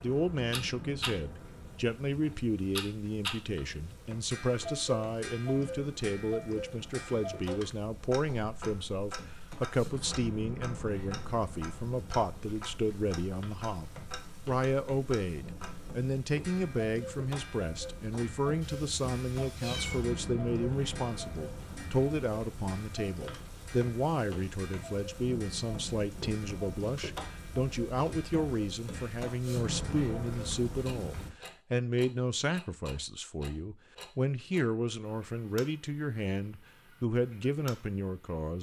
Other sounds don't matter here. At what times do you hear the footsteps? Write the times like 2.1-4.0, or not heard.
not heard.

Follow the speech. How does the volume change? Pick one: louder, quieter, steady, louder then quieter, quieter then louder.
steady.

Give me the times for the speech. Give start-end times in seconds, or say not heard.
0.0-38.5.